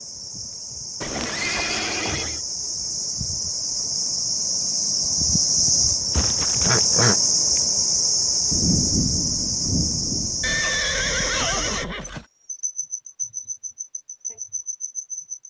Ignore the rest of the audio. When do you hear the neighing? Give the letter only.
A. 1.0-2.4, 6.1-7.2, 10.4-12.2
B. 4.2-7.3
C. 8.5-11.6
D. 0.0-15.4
A.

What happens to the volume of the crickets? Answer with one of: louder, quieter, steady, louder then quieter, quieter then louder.
louder then quieter.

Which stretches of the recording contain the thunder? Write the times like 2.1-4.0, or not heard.
8.5-11.6.